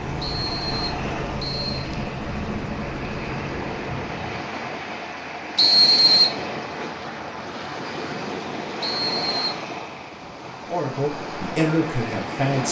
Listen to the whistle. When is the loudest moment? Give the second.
6 s.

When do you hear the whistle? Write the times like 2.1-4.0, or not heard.
0.2-1.9, 5.5-6.3, 8.8-9.6.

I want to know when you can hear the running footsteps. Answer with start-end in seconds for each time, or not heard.
not heard.